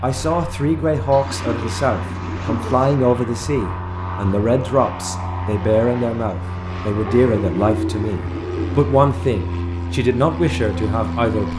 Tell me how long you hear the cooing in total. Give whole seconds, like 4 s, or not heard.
4 s.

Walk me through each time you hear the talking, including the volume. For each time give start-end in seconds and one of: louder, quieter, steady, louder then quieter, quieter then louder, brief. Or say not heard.
0.0-11.5 steady.